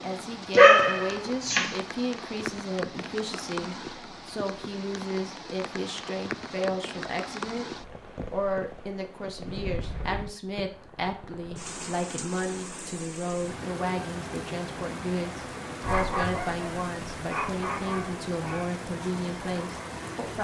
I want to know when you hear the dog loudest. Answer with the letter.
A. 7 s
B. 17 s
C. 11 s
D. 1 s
D.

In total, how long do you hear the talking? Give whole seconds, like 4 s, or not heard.
20 s.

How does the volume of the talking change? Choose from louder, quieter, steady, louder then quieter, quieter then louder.
steady.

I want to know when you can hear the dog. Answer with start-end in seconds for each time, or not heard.
0.5-1.8, 15.8-18.6.